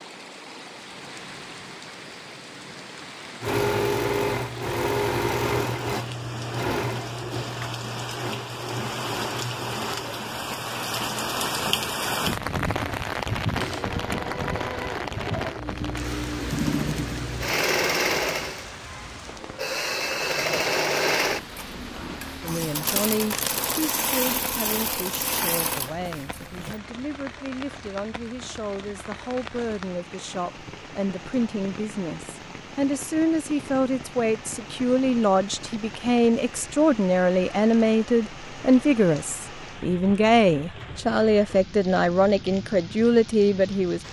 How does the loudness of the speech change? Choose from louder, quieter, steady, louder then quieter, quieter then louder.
louder.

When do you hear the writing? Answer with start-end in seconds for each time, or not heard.
not heard.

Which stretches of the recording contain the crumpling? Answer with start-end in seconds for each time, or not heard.
22.9-23.9.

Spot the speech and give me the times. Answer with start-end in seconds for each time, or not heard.
22.4-44.0.